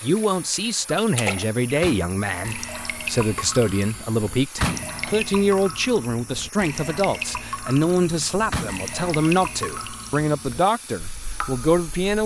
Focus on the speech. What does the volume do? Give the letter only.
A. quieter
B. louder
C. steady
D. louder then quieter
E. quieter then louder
C.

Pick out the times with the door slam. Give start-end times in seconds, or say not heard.
1.8-2.5, 4.6-5.2, 8.5-9.2.